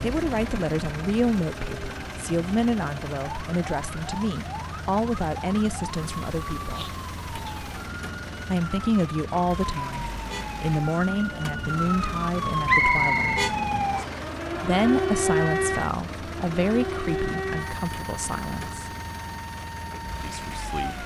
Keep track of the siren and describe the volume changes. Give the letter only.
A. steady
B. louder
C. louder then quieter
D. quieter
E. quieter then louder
C.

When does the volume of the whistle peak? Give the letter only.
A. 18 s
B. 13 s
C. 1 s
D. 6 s
B.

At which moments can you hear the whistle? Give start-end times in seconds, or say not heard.
12.7-14.2.